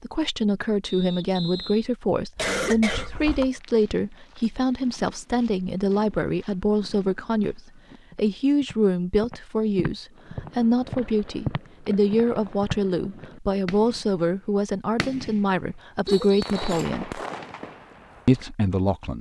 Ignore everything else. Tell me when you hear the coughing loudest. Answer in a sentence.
The volume of the coughing peaks at 3 seconds.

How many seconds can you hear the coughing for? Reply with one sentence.
You can hear the coughing for 2 seconds altogether.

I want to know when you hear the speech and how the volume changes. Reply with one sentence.
You can hear the speech from 0.0 to 17.2 s, at a steady volume; and briefly from 18.2 to 19.1 s.